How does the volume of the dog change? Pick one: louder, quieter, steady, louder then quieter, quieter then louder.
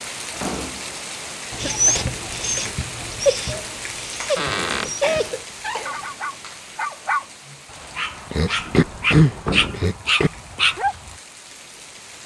quieter then louder.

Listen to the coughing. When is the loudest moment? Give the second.
9 s.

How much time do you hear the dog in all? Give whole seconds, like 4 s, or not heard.
10 s.